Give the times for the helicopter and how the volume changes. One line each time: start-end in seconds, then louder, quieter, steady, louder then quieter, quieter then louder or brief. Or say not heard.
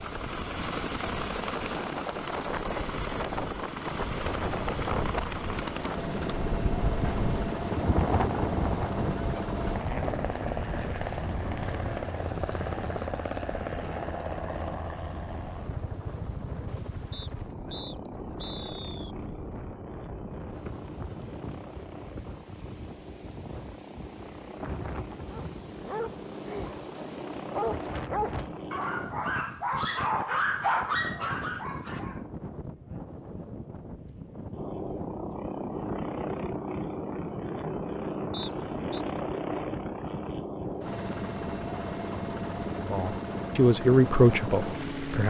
0.0-29.1 quieter
34.5-45.2 steady.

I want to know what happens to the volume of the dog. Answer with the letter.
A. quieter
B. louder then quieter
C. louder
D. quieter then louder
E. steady
C.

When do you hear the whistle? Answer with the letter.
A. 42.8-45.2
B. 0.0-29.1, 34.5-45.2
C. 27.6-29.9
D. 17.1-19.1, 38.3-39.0
D.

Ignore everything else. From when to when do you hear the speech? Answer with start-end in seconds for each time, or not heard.
42.8-45.2.